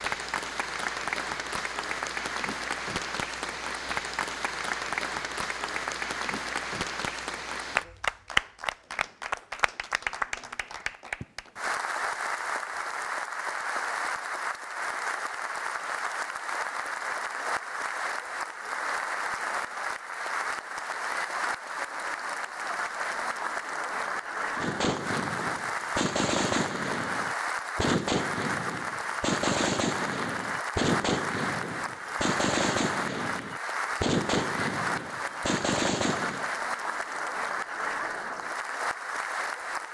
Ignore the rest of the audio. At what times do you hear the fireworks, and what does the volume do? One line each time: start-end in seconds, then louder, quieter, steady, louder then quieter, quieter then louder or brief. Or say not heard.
24.6-36.5 steady.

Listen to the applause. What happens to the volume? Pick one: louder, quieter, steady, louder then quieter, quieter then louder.
steady.